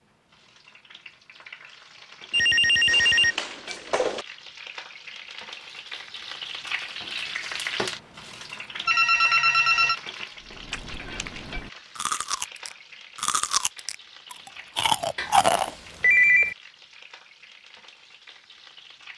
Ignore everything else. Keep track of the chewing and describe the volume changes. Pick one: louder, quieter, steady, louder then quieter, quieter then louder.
louder.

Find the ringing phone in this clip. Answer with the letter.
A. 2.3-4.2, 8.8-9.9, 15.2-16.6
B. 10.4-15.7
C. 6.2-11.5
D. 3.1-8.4
A.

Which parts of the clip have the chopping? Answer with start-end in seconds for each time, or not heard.
not heard.